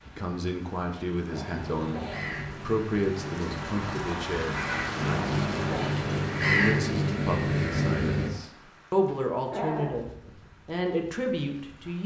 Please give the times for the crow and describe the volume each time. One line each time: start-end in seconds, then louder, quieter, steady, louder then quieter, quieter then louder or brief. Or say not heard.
1.3-8.3 louder.